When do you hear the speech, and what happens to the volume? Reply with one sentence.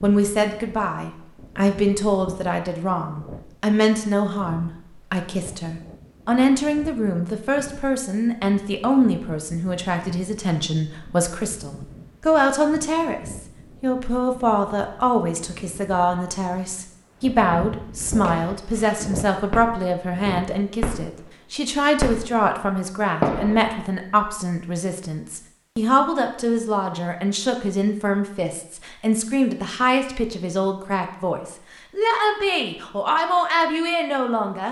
The speech can be heard from 0.0 to 34.6 s, at a steady volume.